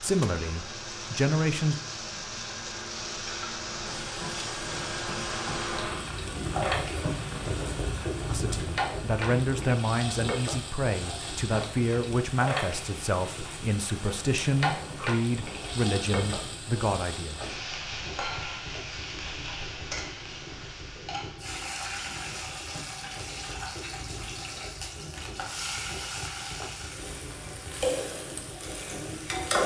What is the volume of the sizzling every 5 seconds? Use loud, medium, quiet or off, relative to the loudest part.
medium, loud, loud, loud, medium, loud.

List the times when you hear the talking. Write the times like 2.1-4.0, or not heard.
0.0-1.8, 8.3-17.4.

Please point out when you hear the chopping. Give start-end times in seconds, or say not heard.
not heard.